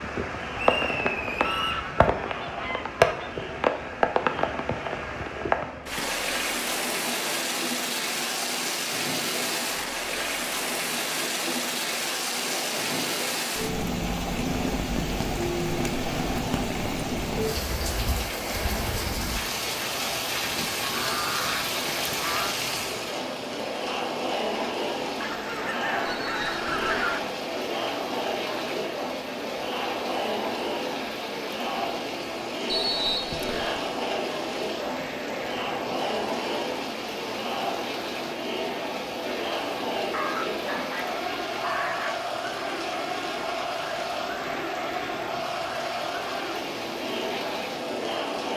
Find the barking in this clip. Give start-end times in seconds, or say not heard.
not heard.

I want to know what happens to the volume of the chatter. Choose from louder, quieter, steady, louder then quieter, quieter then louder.
louder.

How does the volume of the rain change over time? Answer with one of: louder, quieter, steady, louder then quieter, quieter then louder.
quieter.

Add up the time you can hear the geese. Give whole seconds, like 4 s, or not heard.
8 s.